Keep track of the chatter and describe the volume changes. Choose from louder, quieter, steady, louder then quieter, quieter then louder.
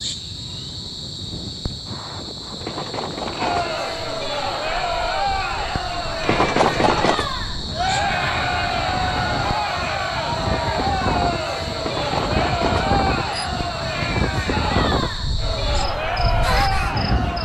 steady.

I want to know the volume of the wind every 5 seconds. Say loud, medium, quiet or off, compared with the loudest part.
medium, medium, loud, loud.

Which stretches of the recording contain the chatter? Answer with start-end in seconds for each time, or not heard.
3.4-17.4.